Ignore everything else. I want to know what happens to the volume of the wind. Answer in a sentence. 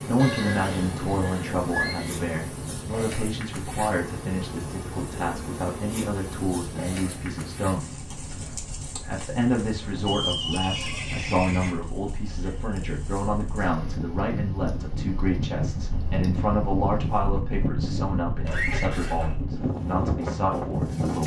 The loudness of the wind goes up.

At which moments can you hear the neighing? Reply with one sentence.
The neighing can be heard from 0.1 to 2.1 s, from 10.1 to 11.7 s and from 18.4 to 19.4 s.